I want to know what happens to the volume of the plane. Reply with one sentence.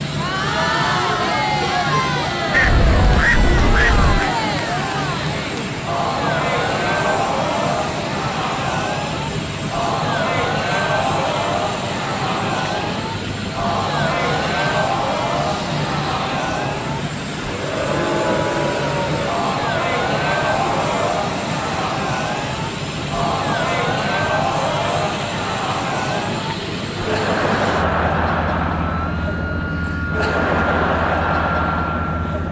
The loudness of the plane stays about the same.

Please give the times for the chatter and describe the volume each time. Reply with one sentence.
The chatter can be heard from 0.0 to 32.4 s, at a steady volume.